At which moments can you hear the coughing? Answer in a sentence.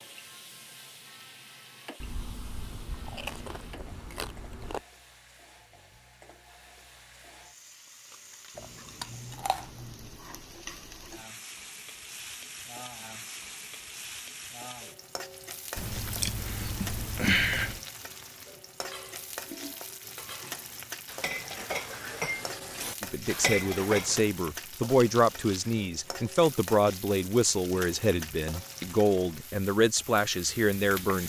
You can't hear the coughing here.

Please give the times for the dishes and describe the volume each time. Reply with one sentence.
You can hear the dishes from 18.8 to 24.3 s, getting louder.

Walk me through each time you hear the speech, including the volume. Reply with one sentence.
You can hear the speech from 23.0 to 31.2 s, at a steady volume.